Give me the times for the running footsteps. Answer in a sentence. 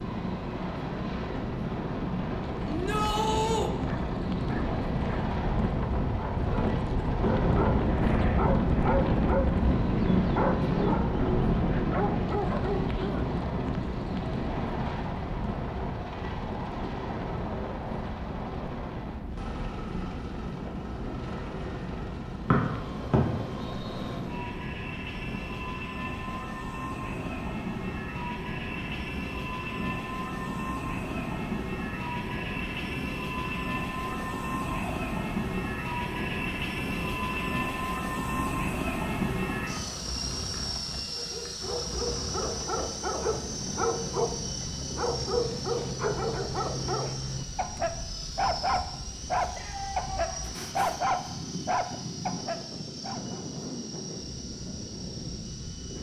You can't hear the running footsteps here.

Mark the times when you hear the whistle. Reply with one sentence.
The whistle can be heard from 22.5 to 24.2 s.